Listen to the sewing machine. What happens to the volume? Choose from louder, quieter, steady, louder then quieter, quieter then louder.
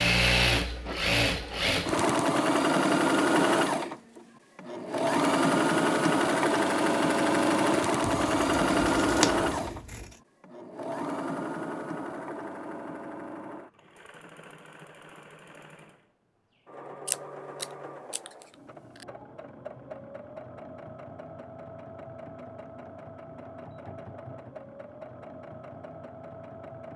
quieter.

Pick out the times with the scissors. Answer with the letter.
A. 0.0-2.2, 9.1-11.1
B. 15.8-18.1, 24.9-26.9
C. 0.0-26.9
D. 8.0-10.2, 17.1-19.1
D.